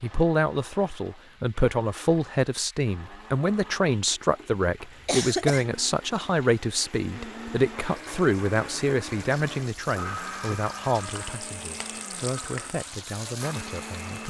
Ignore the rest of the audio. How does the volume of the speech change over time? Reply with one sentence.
The loudness of the speech goes down.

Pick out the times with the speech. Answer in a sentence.
The speech can be heard from 0.0 to 14.2 s.